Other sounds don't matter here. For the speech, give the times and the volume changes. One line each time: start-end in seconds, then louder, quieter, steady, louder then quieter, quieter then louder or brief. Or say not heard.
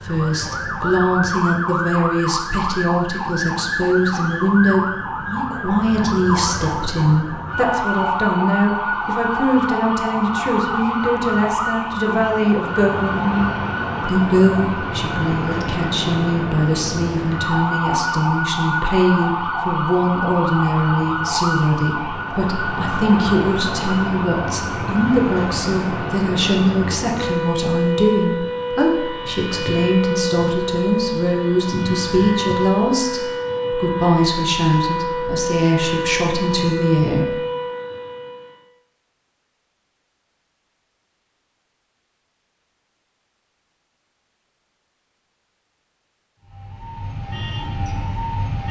0.0-37.4 steady.